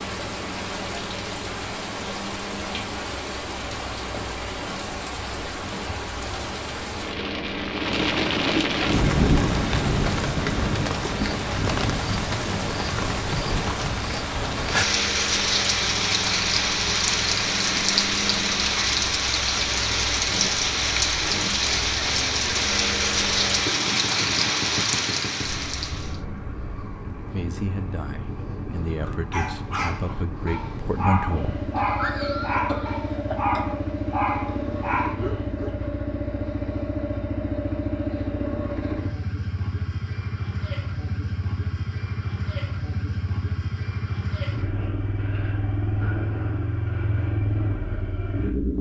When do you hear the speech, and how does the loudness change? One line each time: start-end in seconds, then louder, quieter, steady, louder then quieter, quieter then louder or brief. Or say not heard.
27.2-31.7 louder.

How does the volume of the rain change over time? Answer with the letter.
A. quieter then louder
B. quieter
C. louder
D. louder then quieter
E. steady
C.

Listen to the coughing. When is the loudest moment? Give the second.
32 s.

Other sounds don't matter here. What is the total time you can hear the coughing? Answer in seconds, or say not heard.
2 s.